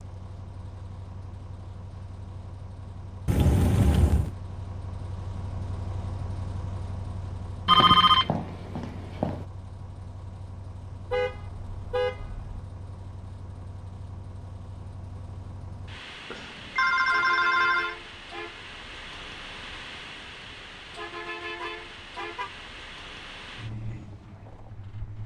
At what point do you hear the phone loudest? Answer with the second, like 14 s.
8 s.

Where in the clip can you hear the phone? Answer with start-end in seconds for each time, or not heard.
7.7-9.4, 16.3-17.9.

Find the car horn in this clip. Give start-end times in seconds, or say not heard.
3.2-4.3, 11.1-12.6, 21.6-22.5.